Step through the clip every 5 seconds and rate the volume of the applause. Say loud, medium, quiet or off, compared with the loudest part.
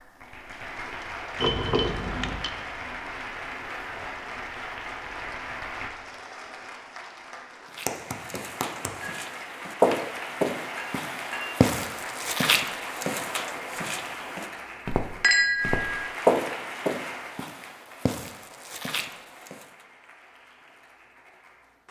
loud, loud, loud, loud, quiet.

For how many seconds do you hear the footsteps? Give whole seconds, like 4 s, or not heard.
12 s.